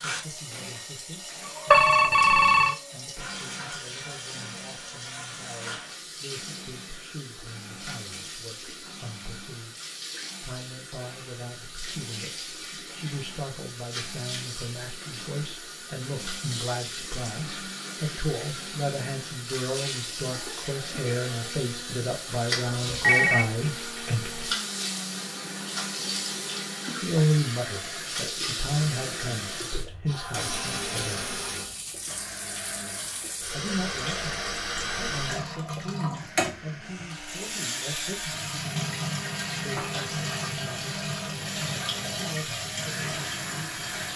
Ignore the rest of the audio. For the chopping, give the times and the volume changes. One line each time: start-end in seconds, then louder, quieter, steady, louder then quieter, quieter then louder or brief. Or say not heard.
not heard.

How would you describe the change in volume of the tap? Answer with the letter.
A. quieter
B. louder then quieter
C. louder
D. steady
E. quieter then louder
C.